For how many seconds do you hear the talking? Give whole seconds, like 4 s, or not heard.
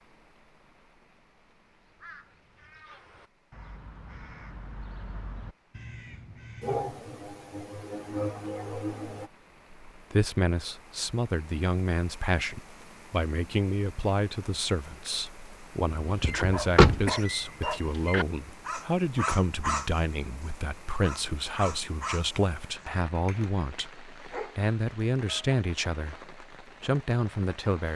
18 s.